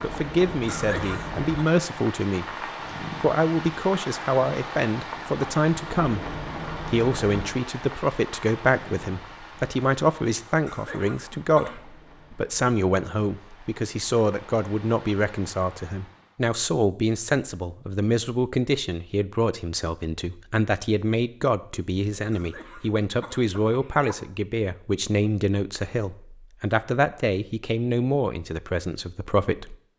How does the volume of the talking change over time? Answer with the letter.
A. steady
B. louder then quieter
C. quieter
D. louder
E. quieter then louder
A.